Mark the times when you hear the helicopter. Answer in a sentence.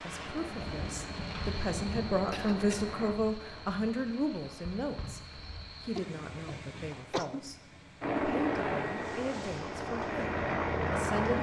The helicopter can be heard from 0.0 to 3.1 s and from 8.0 to 11.3 s.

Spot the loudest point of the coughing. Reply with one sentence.
The volume of the coughing peaks at 7 seconds.